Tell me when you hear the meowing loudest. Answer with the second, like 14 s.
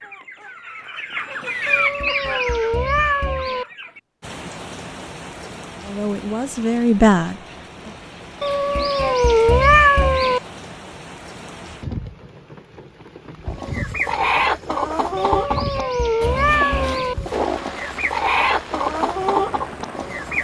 10 s.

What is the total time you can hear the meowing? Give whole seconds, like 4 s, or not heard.
6 s.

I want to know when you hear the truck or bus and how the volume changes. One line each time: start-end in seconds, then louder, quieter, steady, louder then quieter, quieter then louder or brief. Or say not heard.
not heard.